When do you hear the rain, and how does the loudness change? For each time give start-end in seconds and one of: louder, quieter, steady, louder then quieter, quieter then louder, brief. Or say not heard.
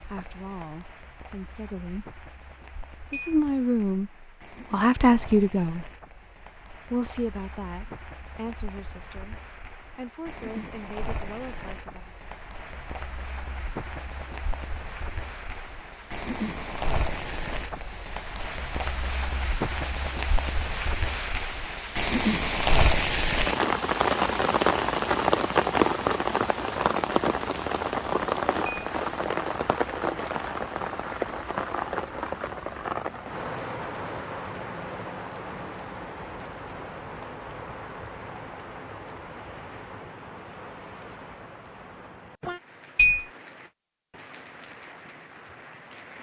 0.0-46.1 louder then quieter.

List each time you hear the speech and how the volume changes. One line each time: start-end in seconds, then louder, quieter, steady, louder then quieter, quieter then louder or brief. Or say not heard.
0.0-2.1 brief
3.1-4.1 brief
4.7-5.8 brief
6.9-12.1 quieter then louder.